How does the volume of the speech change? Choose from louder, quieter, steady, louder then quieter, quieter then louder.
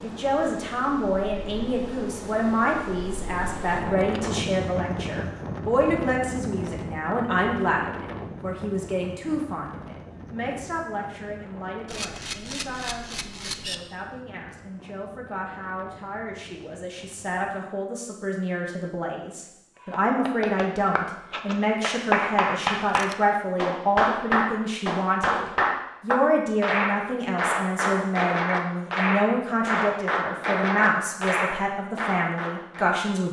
quieter then louder.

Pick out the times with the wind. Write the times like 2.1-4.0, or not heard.
0.0-17.6.